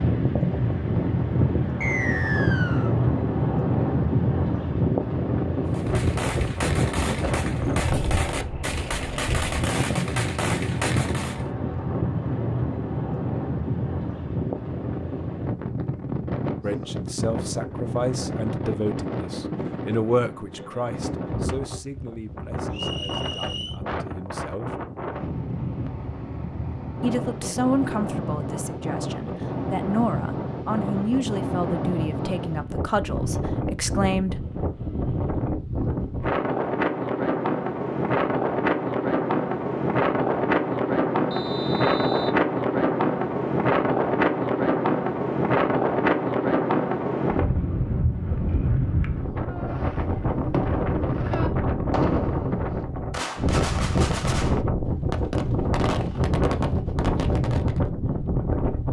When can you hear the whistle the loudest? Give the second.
2 s.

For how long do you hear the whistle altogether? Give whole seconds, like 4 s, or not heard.
3 s.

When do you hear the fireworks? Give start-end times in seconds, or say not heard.
5.7-11.4, 49.5-57.8.